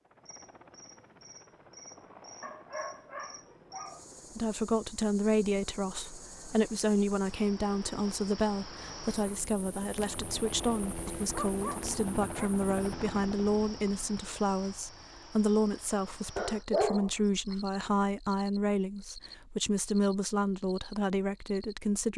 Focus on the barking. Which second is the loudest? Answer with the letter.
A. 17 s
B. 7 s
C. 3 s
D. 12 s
A.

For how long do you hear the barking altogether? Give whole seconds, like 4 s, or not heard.
4 s.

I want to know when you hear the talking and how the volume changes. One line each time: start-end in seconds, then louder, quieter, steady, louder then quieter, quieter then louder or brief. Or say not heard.
4.3-22.1 steady.